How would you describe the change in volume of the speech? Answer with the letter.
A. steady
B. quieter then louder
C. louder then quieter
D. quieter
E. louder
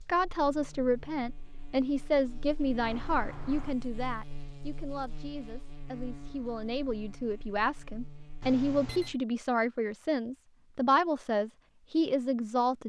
B.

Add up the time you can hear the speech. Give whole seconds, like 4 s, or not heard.
13 s.